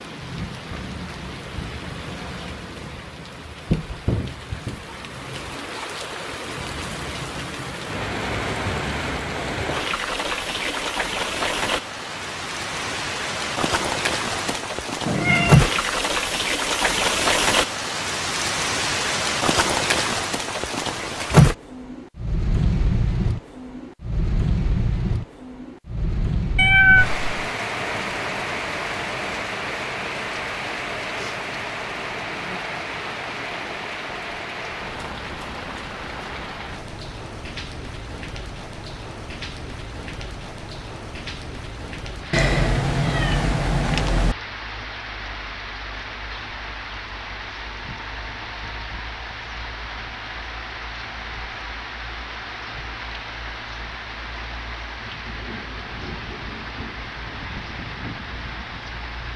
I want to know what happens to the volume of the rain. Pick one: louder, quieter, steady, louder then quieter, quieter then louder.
louder then quieter.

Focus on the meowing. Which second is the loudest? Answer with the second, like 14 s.
27 s.